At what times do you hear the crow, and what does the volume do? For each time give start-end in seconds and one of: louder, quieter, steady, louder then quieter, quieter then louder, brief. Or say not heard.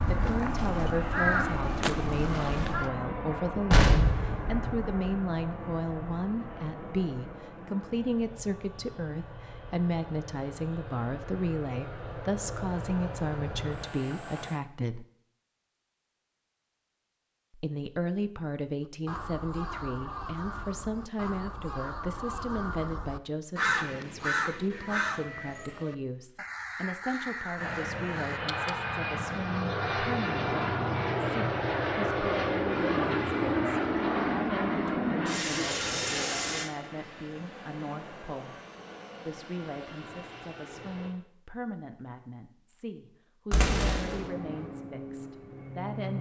0.0-2.9 brief
18.9-28.8 louder then quieter.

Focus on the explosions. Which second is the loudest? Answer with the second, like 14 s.
4 s.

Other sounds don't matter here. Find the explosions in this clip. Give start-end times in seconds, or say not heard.
3.7-5.0, 43.5-44.1.